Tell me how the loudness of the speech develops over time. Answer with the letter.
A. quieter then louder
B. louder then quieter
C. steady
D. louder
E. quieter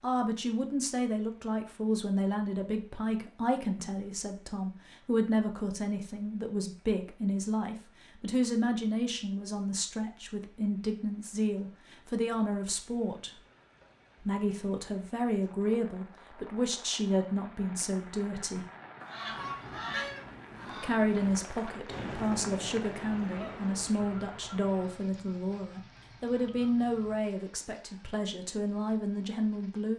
C.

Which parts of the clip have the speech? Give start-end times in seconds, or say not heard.
0.0-13.4, 14.2-18.6, 20.6-29.9.